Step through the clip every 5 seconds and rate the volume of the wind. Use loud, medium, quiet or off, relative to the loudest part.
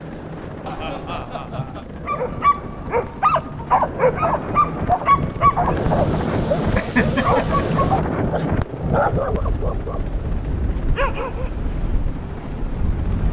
medium, loud, medium.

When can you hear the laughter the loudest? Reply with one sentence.
The loudest moment of the laughter is at 7 seconds.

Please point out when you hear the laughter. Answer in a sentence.
The laughter can be heard from 0.7 to 1.9 s and from 6.8 to 8.1 s.